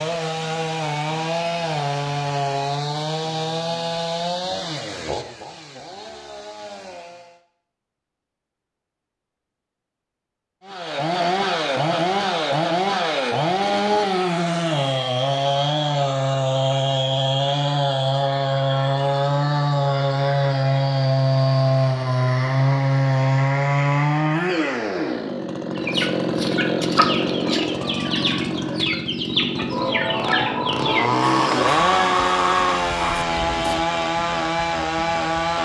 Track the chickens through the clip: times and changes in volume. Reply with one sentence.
The chickens can be heard from 25.8 to 33.8 s, at a steady volume.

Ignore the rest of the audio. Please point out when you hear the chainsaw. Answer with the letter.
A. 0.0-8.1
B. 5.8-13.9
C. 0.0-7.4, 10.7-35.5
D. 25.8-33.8
C.